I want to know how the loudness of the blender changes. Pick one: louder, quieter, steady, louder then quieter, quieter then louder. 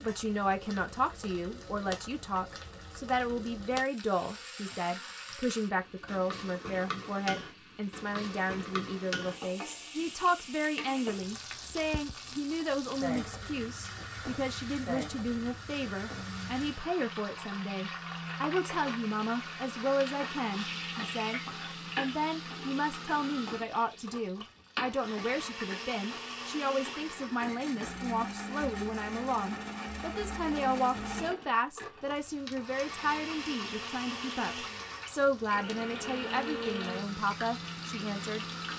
louder.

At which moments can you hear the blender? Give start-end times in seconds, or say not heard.
16.1-38.7.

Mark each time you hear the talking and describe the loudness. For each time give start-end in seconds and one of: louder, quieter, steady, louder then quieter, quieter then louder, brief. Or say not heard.
0.0-38.5 steady.